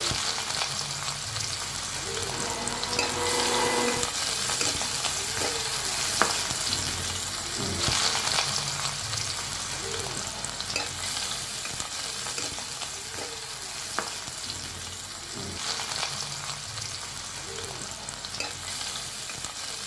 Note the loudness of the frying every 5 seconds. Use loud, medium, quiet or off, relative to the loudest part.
loud, loud, medium, medium.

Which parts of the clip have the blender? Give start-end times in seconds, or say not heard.
2.3-4.0.